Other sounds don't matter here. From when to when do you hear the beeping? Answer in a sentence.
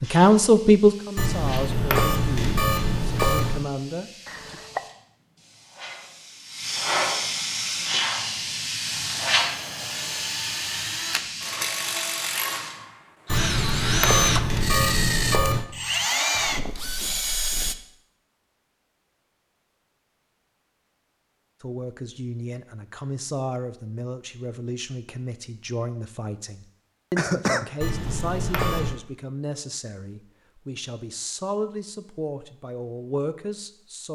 You can hear the beeping from 1.1 to 3.6 s, from 13.2 to 15.7 s and from 27.8 to 29.0 s.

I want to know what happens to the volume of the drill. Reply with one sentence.
The loudness of the drill goes up.